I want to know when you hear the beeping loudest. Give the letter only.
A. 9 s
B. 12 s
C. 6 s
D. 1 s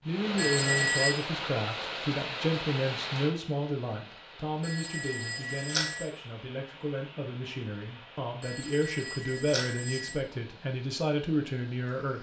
D.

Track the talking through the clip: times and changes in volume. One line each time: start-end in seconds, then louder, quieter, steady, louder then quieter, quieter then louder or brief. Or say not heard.
0.1-12.1 quieter then louder.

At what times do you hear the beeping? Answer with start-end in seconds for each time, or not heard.
0.3-1.1, 4.6-6.1, 8.4-10.2.